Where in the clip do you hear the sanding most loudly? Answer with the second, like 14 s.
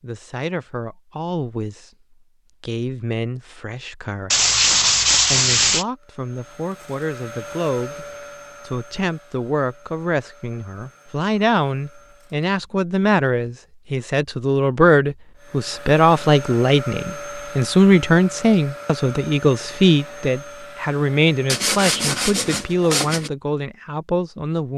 5 s.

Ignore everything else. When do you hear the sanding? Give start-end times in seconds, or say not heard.
4.3-5.8, 21.4-23.3.